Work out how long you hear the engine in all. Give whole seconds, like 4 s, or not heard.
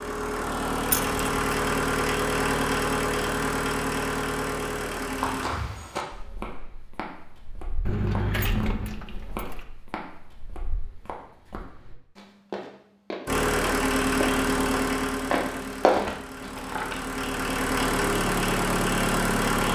12 s.